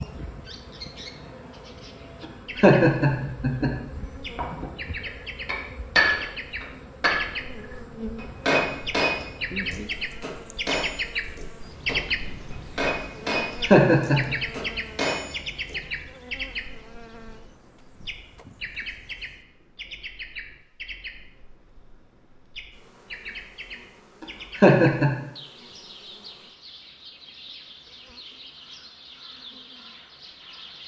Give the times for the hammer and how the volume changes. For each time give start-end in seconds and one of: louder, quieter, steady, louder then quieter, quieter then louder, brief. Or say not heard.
4.3-7.3 brief
8.2-15.8 quieter then louder.